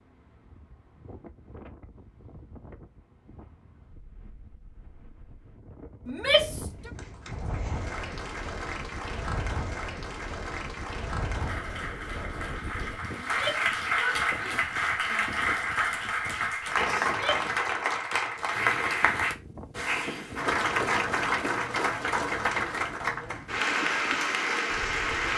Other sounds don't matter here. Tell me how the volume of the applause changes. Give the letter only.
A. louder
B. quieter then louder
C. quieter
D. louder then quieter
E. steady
A.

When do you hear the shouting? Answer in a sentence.
You can hear the shouting from 6.0 to 6.9 s, from 13.2 to 15.3 s and from 17.1 to 17.5 s.